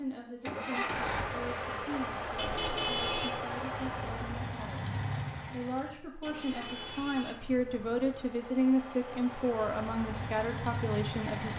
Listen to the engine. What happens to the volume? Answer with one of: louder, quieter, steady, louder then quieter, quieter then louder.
quieter then louder.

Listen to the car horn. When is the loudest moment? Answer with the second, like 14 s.
3 s.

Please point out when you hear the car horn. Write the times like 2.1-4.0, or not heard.
2.4-3.4, 6.2-8.2.